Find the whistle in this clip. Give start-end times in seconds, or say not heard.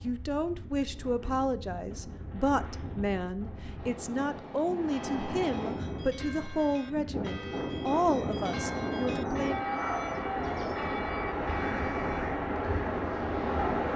not heard.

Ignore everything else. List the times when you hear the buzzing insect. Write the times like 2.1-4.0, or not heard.
not heard.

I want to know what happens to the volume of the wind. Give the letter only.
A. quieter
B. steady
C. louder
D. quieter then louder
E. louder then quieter
C.